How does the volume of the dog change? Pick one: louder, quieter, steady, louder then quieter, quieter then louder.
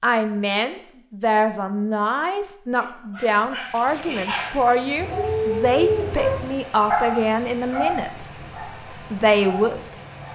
louder then quieter.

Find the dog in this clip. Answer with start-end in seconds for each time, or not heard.
2.9-10.3.